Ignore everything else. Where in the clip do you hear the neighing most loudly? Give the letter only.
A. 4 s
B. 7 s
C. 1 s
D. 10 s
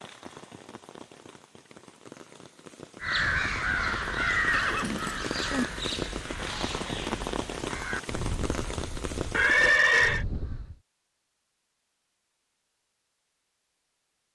D.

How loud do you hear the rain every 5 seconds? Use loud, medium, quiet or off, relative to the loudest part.
medium, loud, off.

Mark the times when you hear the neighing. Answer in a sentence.
You can hear the neighing from 4.5 to 5.7 s and from 9.3 to 10.2 s.